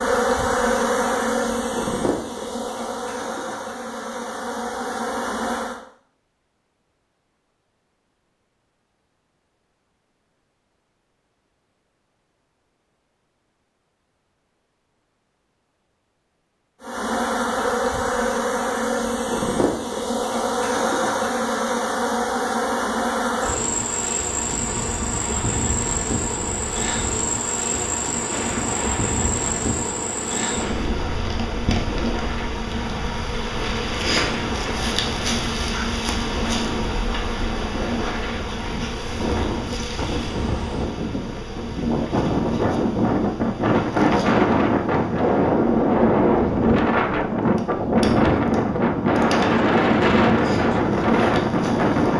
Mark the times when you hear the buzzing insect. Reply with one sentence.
The buzzing insect can be heard from 0.0 to 5.8 s and from 16.8 to 52.1 s.